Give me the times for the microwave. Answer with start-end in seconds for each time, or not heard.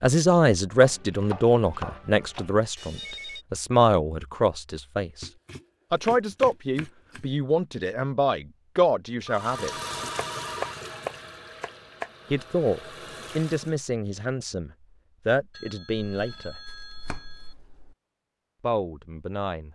not heard.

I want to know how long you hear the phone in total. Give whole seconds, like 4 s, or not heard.
4 s.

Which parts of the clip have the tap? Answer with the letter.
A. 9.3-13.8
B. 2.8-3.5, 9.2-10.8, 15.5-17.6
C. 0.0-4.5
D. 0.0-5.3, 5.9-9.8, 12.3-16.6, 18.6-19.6
A.